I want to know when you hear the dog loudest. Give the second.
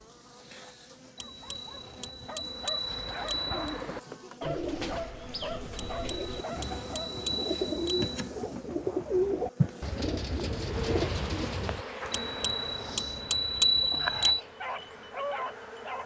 15 s.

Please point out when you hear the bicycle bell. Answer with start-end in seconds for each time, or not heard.
1.1-3.9, 5.8-8.1, 12.1-14.4.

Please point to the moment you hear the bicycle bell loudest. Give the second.
14 s.